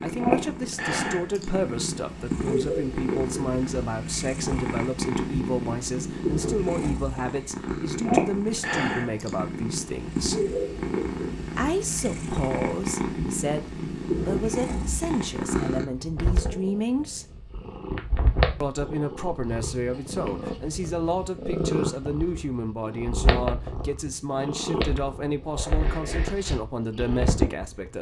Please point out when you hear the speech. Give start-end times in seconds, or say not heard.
0.0-10.5, 11.6-17.2, 18.6-27.9.